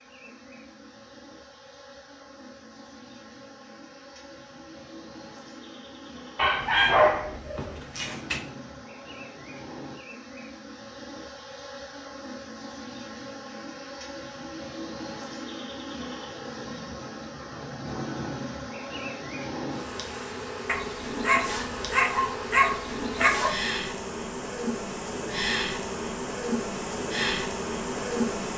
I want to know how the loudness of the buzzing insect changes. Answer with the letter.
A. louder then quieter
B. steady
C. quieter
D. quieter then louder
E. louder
E.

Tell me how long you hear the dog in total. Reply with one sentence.
You can hear the dog for 5 seconds altogether.